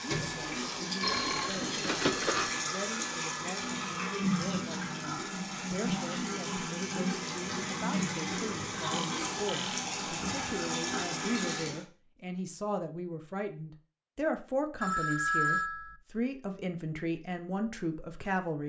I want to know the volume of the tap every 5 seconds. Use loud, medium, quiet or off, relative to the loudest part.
loud, loud, loud, off.